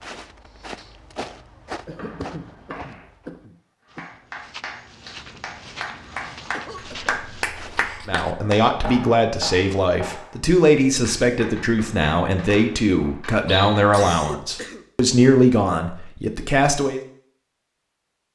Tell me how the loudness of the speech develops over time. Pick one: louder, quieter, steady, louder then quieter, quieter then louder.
steady.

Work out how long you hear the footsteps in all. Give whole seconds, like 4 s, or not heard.
8 s.